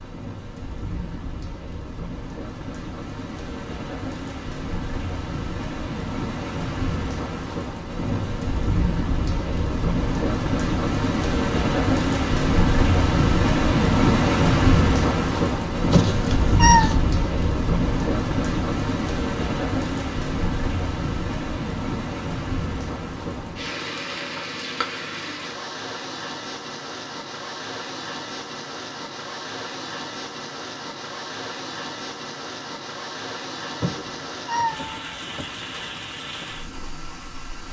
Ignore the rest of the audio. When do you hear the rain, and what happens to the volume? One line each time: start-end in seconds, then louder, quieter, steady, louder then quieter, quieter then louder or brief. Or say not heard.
0.0-37.6 louder then quieter.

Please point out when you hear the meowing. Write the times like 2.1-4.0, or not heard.
15.9-17.0, 33.8-35.5.